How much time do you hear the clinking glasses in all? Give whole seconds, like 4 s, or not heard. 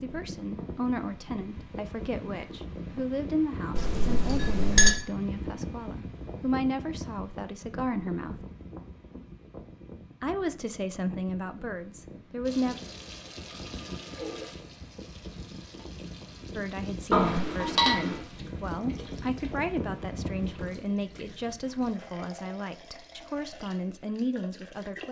2 s.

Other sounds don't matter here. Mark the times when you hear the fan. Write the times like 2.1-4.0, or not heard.
0.0-20.7.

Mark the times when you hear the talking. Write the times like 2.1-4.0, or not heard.
0.0-8.4, 10.2-12.8, 16.6-25.0.